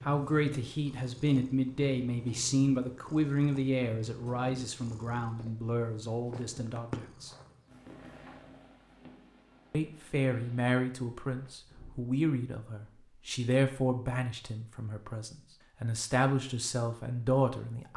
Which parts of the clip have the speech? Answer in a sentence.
The speech can be heard from 0.1 to 7.3 s and from 9.7 to 17.9 s.